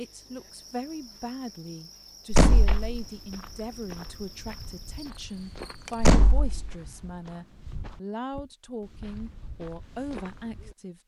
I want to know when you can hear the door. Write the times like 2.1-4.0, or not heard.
2.3-3.0, 6.0-6.8.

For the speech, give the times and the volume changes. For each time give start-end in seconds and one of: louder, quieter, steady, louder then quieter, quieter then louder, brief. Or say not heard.
0.0-11.0 steady.